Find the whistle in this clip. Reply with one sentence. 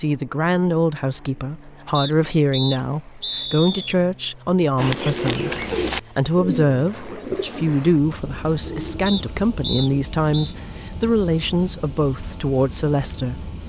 You can hear the whistle from 1.9 to 4.0 s and from 9.1 to 10.6 s.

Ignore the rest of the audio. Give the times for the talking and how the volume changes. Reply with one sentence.
The talking can be heard from 0.0 to 13.6 s, at a steady volume.